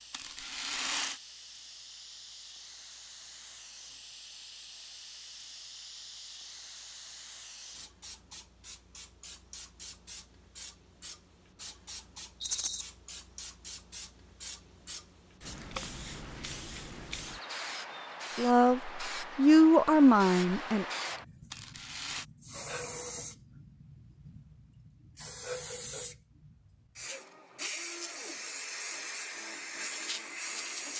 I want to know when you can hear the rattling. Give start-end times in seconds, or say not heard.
0.1-1.2, 12.4-12.8, 21.5-22.2.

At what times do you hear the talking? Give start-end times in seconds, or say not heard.
18.4-20.9.